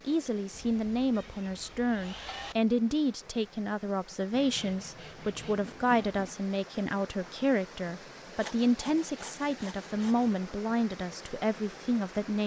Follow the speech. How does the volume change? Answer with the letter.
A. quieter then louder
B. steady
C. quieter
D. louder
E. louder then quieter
B.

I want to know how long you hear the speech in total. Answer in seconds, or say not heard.
12 s.